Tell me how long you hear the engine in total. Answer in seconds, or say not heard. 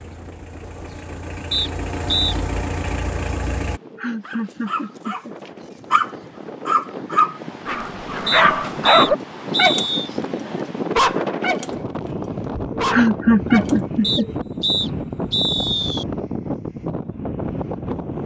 4 s.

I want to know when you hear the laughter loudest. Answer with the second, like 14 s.
13 s.